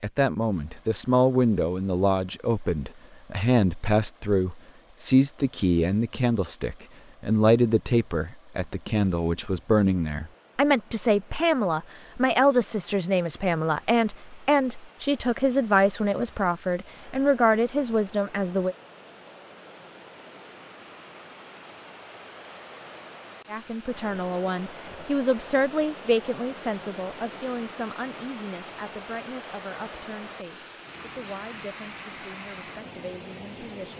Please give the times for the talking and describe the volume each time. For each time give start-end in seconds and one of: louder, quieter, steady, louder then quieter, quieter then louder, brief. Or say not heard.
0.0-18.8 steady
23.4-33.9 quieter.